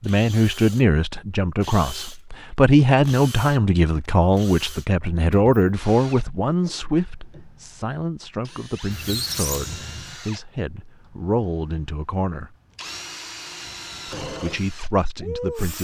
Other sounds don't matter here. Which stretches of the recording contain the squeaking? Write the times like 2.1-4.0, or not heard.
8.9-10.2.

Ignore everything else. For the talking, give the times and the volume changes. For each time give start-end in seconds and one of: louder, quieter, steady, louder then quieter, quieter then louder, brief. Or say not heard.
0.0-12.5 quieter
14.2-15.7 brief.